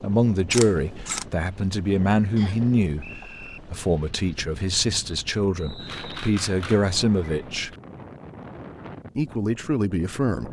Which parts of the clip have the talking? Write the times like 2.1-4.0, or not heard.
0.0-7.7, 9.2-10.4.